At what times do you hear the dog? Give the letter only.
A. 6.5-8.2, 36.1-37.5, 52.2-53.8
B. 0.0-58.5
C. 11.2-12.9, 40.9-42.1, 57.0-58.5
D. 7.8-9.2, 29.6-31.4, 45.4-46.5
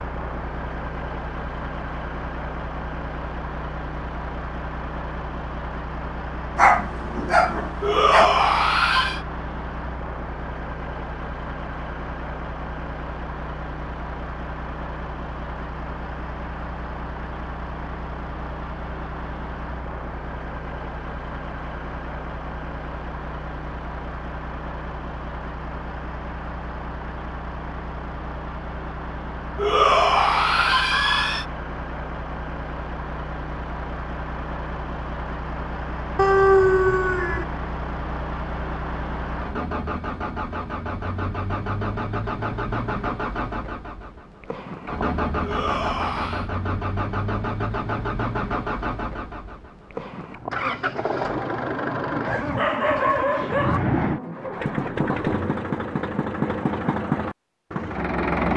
A.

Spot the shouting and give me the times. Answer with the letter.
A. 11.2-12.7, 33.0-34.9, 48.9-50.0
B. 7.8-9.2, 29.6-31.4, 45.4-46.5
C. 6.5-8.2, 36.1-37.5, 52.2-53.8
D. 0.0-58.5
B.